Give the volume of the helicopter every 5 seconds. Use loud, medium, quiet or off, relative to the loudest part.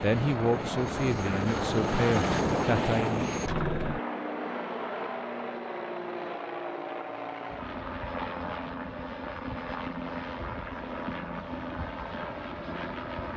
loud, medium, medium.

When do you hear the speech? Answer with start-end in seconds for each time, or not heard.
0.0-3.2.